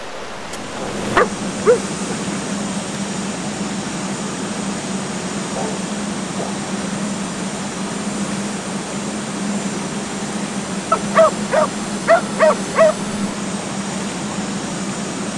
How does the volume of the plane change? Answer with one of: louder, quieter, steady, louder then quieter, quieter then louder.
steady.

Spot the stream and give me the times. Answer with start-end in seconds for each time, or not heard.
0.0-15.3.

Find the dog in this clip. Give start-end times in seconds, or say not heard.
0.5-2.4, 5.5-6.6, 10.9-12.9.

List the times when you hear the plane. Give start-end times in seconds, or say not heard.
0.0-15.3.